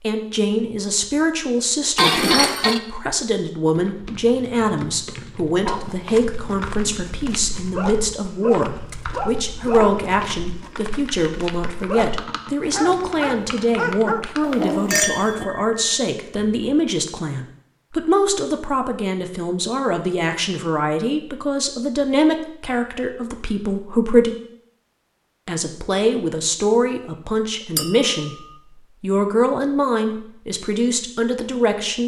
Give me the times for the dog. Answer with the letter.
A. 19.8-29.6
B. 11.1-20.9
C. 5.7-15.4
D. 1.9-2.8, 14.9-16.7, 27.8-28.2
C.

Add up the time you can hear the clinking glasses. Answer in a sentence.
You can hear the clinking glasses for 3 seconds altogether.